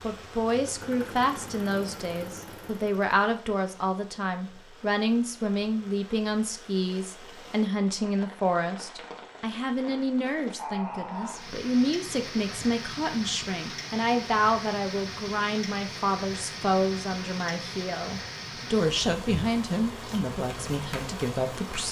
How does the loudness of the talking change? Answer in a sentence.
The volume of the talking stays about the same.